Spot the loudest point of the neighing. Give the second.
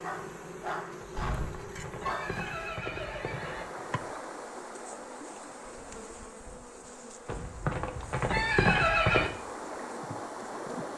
9 s.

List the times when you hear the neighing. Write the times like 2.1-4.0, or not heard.
1.0-3.7, 7.2-9.3.